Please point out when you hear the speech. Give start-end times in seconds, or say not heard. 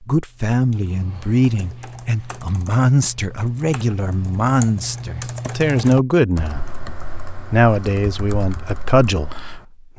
0.0-6.7, 7.5-9.9.